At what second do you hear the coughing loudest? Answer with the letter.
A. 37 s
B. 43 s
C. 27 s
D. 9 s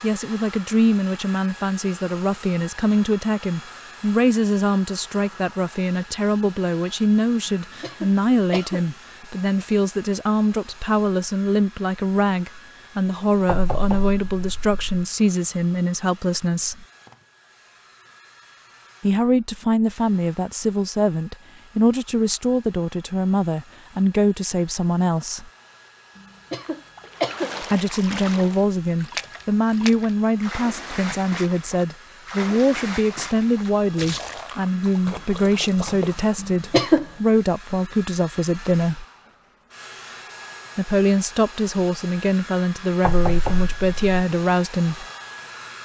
A.